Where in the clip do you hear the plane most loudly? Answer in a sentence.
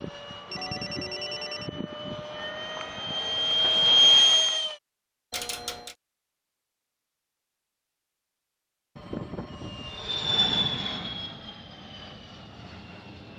The loudest moment of the plane is at 4 seconds.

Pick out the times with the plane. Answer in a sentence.
You can hear the plane from 0.0 to 4.8 s and from 9.5 to 13.3 s.